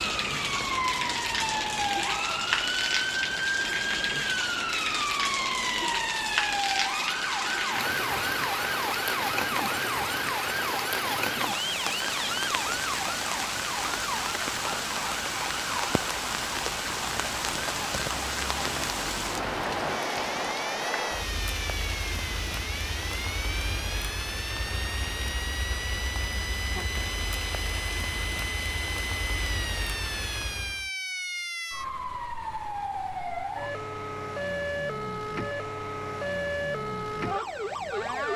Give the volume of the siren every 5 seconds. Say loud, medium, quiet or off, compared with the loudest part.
loud, loud, loud, medium, medium, medium, loud, loud.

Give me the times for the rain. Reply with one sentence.
The rain can be heard from 0.0 to 30.9 s.